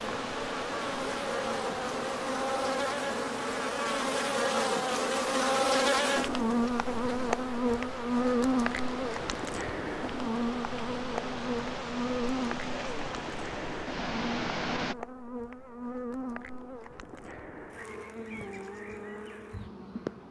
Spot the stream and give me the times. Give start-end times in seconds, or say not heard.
0.0-14.9.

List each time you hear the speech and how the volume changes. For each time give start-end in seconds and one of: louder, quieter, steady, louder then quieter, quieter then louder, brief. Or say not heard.
not heard.